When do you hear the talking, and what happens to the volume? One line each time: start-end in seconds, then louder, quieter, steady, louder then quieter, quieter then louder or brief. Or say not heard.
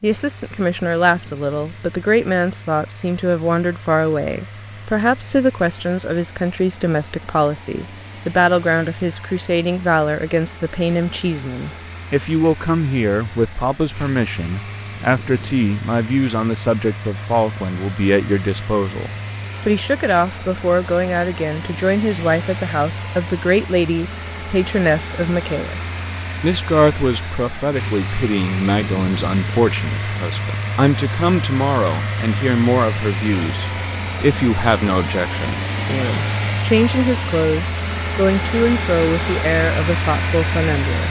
0.0-41.0 steady.